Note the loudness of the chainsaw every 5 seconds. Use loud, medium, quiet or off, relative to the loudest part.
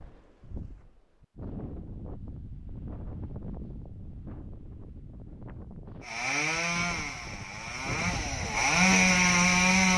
off, loud.